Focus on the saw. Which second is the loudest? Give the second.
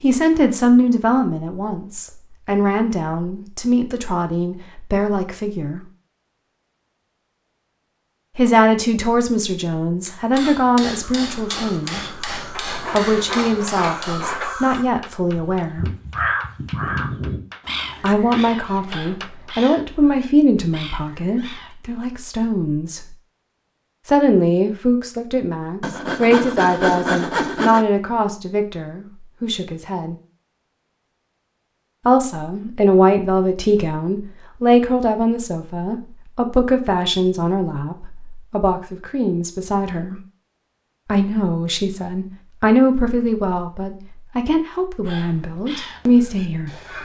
27 s.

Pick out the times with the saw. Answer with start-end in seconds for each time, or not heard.
12.6-14.6, 25.8-27.9.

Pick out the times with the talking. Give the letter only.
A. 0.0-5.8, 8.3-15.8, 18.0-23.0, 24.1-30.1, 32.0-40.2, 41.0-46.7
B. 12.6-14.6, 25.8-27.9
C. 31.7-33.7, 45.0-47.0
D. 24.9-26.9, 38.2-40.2
A.